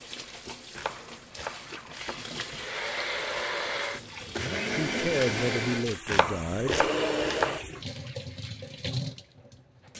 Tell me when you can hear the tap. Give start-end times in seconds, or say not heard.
0.0-9.9.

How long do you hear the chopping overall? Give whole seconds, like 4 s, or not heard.
3 s.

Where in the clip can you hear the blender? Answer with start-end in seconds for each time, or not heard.
2.5-8.0.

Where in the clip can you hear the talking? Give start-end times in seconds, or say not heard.
4.7-6.9.